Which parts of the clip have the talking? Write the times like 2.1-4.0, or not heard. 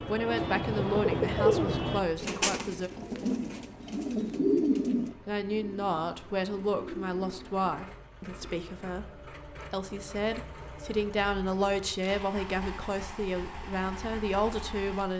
0.0-2.9, 5.2-15.1.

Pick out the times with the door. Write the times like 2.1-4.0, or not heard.
not heard.